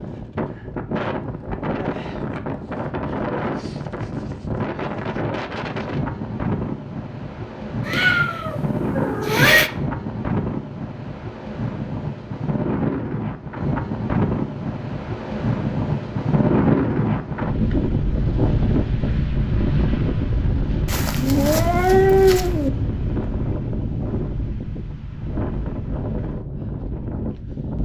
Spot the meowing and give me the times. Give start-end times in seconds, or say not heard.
7.8-9.7, 20.9-22.7.